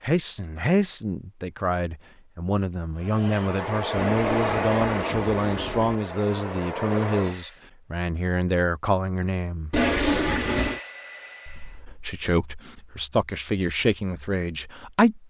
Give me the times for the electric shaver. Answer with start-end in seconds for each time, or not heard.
not heard.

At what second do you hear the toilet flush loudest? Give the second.
10 s.